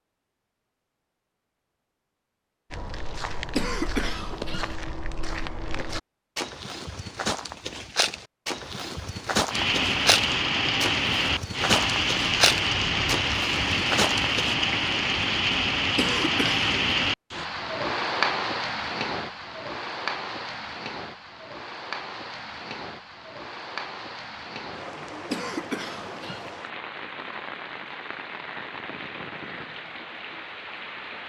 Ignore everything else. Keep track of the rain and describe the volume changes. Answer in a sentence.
The loudness of the rain goes down.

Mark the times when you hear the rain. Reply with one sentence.
You can hear the rain from 9.5 to 31.2 s.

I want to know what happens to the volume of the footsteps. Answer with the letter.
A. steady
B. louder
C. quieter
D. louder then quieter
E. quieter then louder
B.